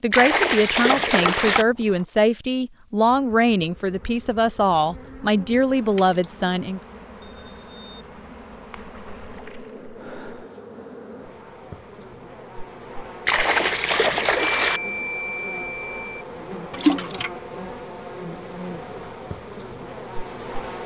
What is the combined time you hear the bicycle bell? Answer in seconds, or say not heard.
4 s.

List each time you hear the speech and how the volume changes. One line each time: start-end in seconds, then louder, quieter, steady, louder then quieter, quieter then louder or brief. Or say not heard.
0.0-6.8 steady.